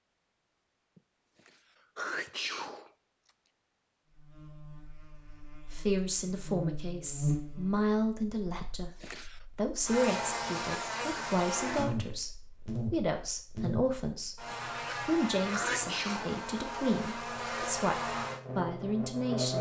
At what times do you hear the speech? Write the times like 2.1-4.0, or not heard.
5.7-8.9, 9.6-19.5.